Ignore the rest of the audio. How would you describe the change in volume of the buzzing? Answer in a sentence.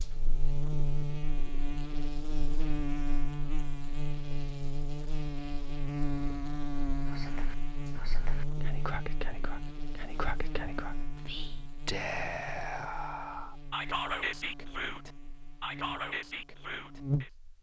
The loudness of the buzzing goes down.